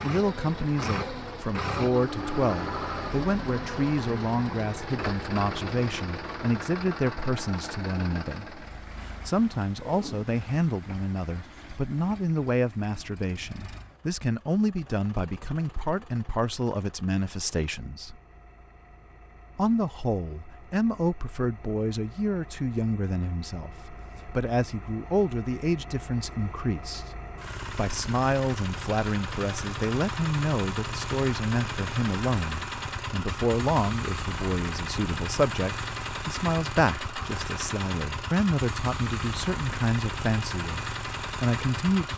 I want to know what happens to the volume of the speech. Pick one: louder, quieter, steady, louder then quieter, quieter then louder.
steady.